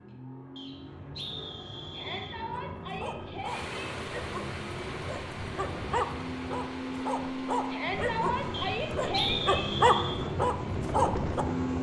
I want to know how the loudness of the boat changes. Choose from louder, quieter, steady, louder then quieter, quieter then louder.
louder.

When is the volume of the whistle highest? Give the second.
9 s.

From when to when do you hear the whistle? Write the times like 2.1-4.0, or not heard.
0.6-2.4, 8.5-10.2.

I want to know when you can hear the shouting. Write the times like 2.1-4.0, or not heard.
1.9-3.8, 7.7-9.7.